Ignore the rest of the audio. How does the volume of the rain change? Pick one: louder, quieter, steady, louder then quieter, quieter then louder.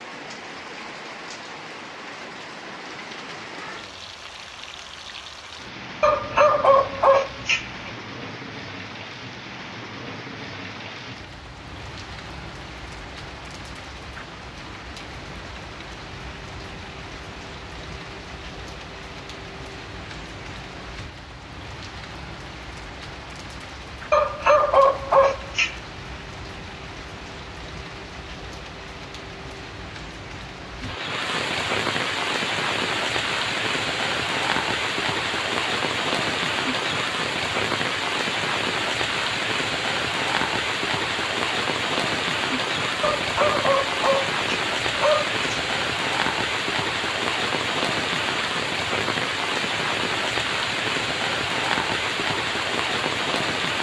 louder.